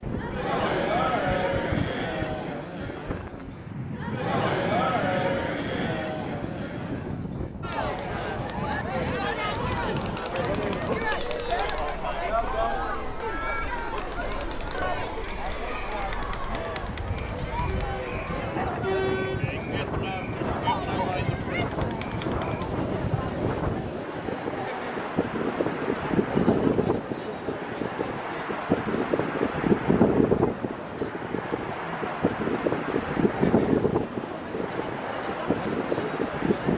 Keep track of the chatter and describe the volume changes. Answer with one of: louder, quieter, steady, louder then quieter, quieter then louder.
quieter.